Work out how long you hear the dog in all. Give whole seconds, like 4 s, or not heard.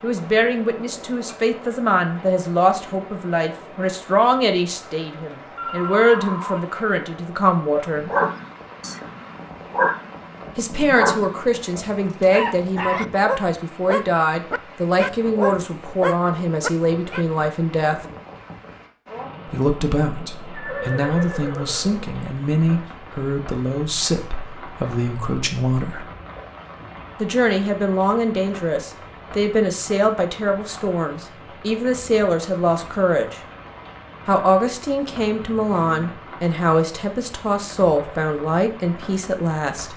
9 s.